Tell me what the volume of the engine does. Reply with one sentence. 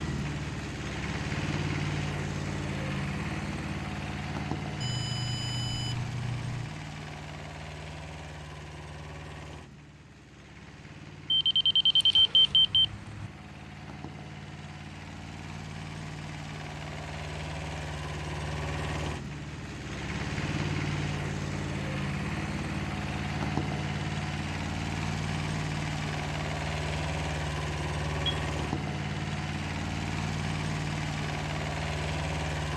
The loudness of the engine goes down, then up.